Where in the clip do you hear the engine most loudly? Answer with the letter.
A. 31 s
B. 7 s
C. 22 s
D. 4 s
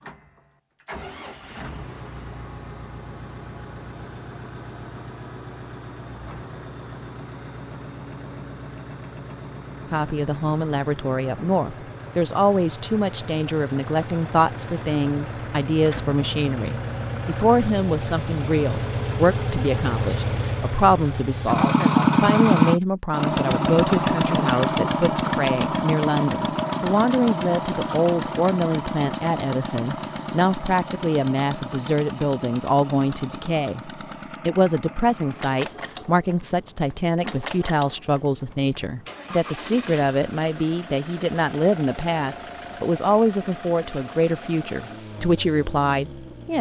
C.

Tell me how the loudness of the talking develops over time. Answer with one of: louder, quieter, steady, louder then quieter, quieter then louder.
steady.